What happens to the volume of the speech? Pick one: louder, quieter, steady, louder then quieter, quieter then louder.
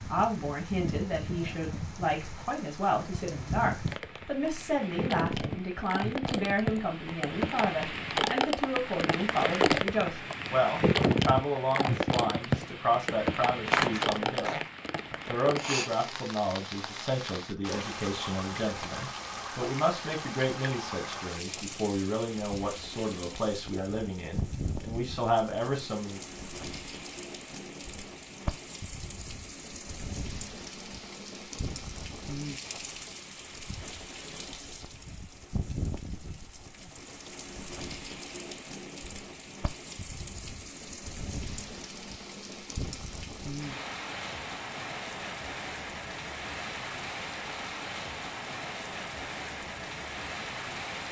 steady.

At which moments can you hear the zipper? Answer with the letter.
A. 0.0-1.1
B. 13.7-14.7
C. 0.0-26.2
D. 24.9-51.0
B.